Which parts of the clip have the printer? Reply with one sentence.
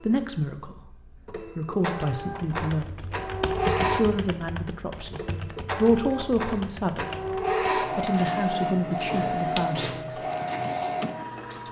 You can hear the printer from 0.0 to 11.6 s.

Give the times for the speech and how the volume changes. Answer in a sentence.
The speech can be heard briefly from 0.1 to 0.9 s; from 1.6 to 7.0 s, getting quieter then louder; and briefly from 7.8 to 10.2 s.